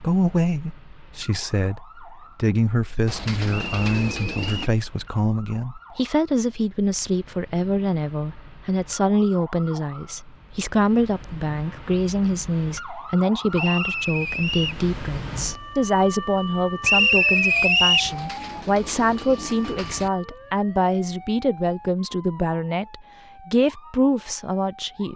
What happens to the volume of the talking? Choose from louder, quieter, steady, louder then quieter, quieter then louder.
steady.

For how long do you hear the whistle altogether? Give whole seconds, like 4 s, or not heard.
4 s.